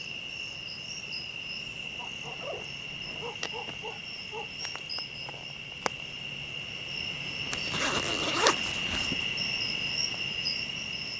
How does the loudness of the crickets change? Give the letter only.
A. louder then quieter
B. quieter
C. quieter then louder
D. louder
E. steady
D.